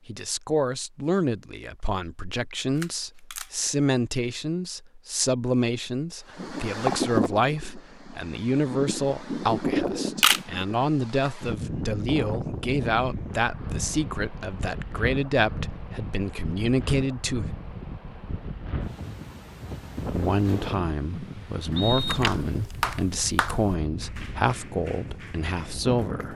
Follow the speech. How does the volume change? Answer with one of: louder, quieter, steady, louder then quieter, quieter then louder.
steady.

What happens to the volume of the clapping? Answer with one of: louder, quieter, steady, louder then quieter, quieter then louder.
quieter.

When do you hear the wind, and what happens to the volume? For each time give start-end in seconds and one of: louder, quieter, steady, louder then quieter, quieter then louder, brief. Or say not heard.
6.3-26.3 quieter.